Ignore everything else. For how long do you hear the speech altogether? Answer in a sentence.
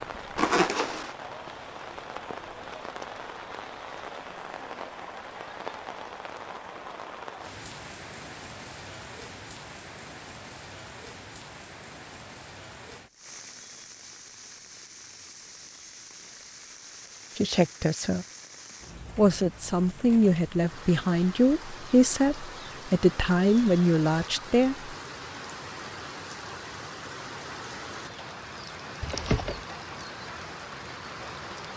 You can hear the speech for 7 seconds altogether.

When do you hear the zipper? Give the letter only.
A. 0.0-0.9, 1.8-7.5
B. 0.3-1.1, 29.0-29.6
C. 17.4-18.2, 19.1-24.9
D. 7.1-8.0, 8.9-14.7
B.